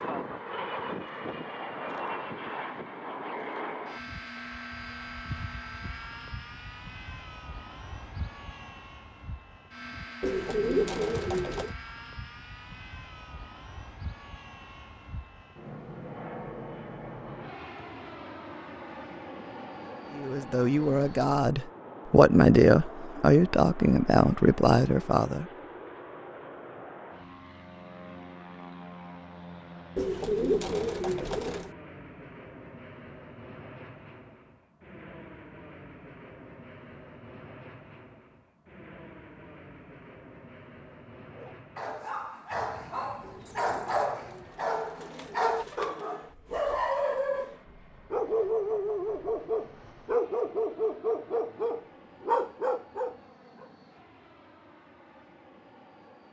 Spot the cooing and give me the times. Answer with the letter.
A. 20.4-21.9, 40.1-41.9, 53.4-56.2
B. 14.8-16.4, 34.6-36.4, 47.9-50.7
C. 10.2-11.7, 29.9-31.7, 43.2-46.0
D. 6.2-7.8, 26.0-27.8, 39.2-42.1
C.